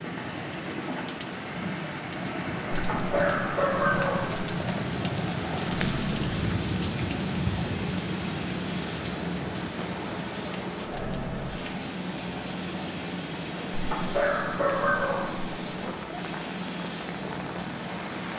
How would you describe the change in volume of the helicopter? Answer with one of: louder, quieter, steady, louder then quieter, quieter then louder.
steady.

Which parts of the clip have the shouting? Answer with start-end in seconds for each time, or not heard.
not heard.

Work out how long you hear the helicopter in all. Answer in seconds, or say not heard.
18 s.